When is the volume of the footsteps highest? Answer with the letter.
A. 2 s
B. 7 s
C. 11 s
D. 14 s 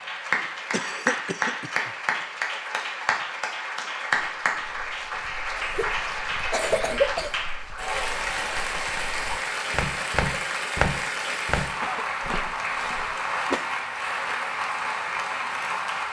C.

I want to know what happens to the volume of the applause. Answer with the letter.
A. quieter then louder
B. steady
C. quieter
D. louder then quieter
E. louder
B.